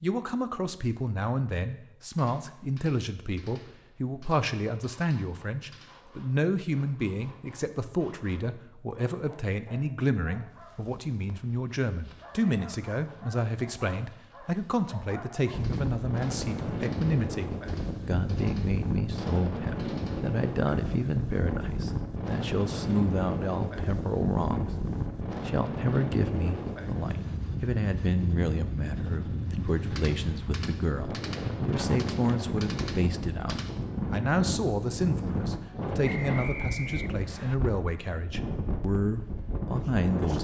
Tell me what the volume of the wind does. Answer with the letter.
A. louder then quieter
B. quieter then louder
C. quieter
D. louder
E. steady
E.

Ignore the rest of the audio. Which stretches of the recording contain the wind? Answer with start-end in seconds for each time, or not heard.
15.5-40.3.